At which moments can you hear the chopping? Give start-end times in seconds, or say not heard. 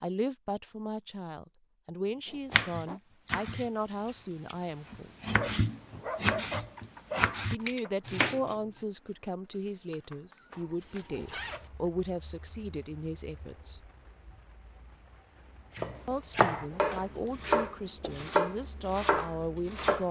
2.5-8.6, 15.8-20.0.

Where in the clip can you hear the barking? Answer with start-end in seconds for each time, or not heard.
5.3-7.2.